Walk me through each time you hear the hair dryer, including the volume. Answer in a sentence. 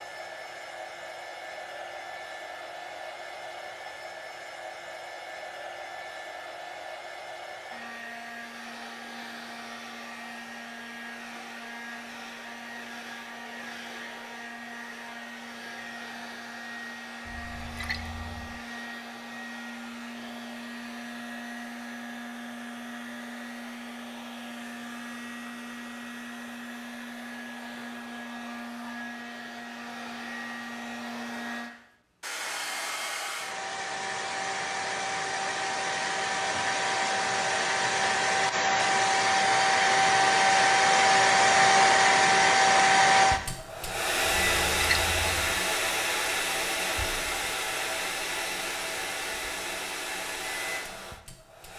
The hair dryer can be heard from 0.0 to 51.7 s, getting louder.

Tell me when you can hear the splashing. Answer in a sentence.
You can hear the splashing from 17.2 to 18.6 s and from 44.2 to 45.6 s.